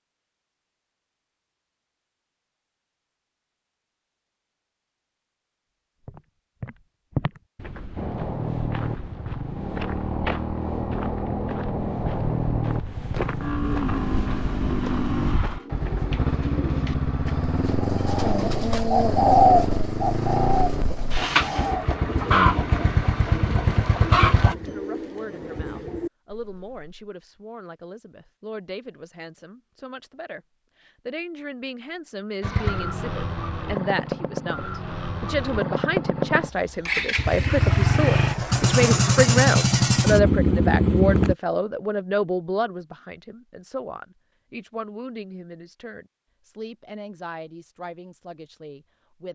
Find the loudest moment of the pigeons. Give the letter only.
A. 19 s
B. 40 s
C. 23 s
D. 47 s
A.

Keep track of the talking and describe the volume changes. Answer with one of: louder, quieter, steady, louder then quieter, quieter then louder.
louder then quieter.